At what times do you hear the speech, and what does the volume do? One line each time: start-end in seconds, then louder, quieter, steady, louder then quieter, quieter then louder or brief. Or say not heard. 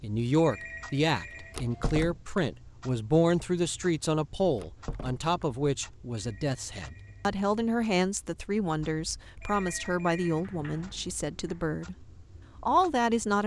0.0-13.4 steady.